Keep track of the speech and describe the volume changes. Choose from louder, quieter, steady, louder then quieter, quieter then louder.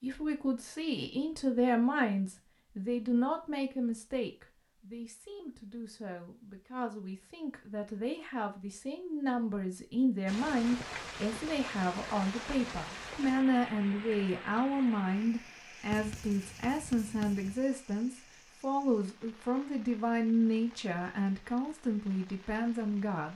quieter then louder.